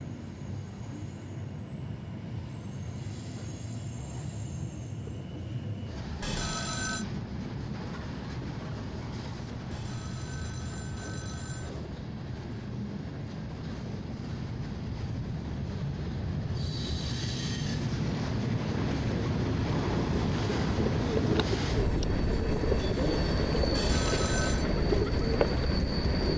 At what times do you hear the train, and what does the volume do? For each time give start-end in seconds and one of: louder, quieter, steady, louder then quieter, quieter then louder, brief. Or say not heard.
0.0-26.3 louder.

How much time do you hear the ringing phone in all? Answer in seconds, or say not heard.
4 s.